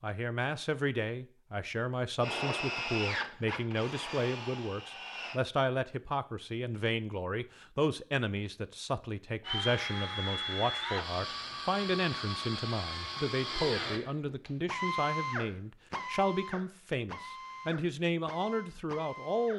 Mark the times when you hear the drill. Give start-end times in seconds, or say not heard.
2.2-5.4, 9.4-19.5.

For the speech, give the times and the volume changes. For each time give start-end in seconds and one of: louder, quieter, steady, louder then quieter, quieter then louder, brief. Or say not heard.
0.0-19.5 steady.